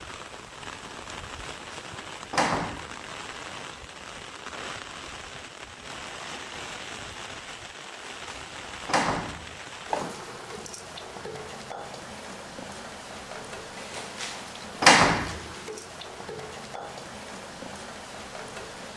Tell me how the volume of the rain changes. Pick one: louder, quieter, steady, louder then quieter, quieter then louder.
steady.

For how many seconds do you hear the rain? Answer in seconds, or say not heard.
19 s.